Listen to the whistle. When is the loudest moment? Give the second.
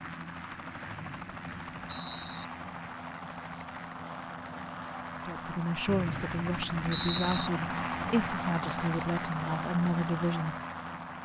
7 s.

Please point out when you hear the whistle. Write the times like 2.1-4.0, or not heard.
0.8-2.5, 5.8-7.5.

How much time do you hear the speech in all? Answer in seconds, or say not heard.
5 s.